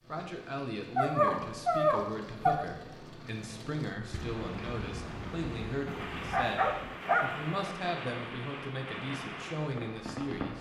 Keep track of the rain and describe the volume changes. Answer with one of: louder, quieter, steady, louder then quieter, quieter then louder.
steady.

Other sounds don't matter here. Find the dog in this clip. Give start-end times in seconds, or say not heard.
0.9-2.6, 5.8-7.5.